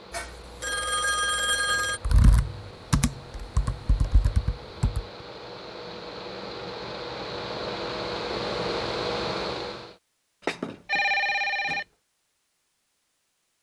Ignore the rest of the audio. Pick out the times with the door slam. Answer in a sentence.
The door slam can't be heard in this clip.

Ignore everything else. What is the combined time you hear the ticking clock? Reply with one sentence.
The ticking clock can't be heard in this clip.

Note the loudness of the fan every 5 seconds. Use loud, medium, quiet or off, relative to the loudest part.
quiet, loud, off.